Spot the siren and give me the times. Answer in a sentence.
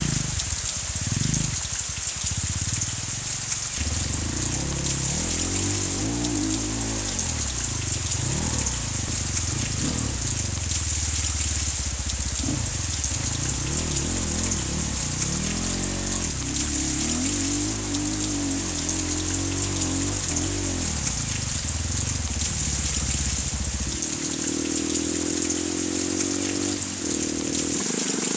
You can't hear the siren here.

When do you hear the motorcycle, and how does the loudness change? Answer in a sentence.
You can hear the motorcycle from 0.0 to 28.3 s, at a steady volume.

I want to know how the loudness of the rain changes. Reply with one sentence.
The volume of the rain stays about the same.